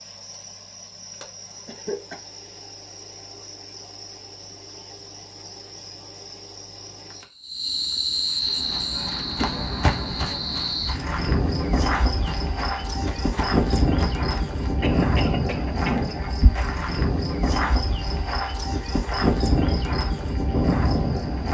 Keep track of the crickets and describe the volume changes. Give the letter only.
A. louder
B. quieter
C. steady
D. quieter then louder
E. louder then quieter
A.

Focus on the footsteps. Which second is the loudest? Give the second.
10 s.